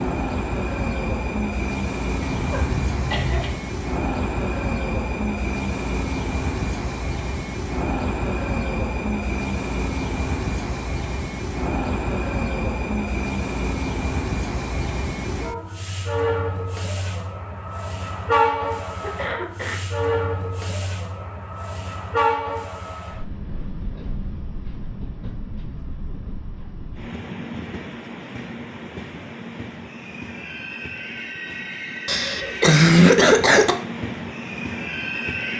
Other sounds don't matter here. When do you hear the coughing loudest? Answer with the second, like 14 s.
33 s.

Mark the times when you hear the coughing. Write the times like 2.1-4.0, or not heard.
2.2-3.6, 19.0-19.8, 32.0-33.8.